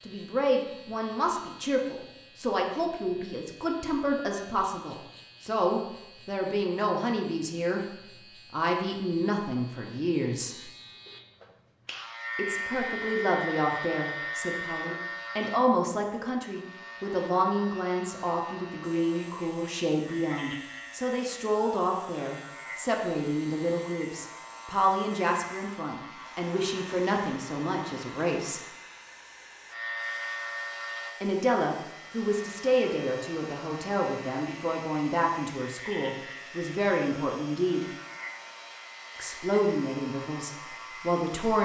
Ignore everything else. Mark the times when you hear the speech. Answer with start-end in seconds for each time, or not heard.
0.1-7.8, 8.5-10.7, 12.3-28.6, 31.2-37.9, 39.1-41.6.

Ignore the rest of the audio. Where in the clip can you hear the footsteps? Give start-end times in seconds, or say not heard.
not heard.